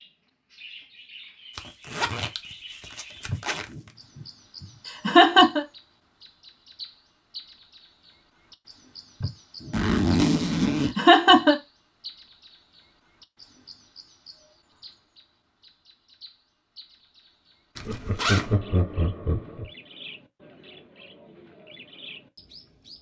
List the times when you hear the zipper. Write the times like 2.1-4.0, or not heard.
1.6-3.6, 9.7-10.9, 17.8-18.6.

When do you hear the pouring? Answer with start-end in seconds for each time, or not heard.
not heard.